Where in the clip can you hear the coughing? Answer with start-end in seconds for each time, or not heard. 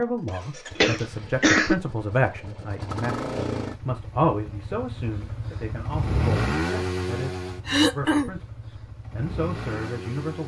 0.8-1.8, 7.7-8.3.